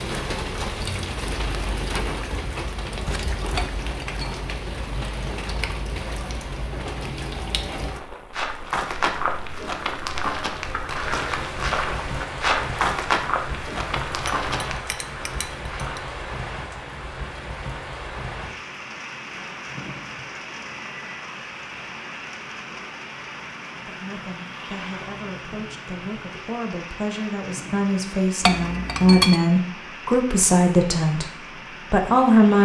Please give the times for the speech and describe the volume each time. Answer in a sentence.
The speech can be heard from 23.9 to 32.6 s, getting louder.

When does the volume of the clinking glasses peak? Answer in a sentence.
The loudest moment of the clinking glasses is at 29 seconds.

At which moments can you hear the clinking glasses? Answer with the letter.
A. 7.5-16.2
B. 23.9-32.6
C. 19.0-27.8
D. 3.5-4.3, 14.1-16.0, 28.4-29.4
D.